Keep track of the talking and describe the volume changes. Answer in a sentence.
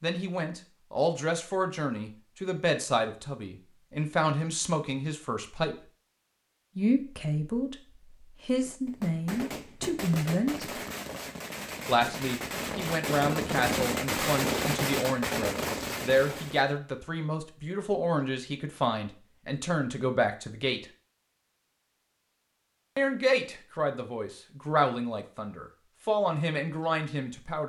The volume of the talking stays about the same.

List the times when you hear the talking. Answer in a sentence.
The talking can be heard from 0.0 to 5.8 s, from 6.8 to 10.7 s, from 11.8 to 20.9 s and from 22.9 to 27.6 s.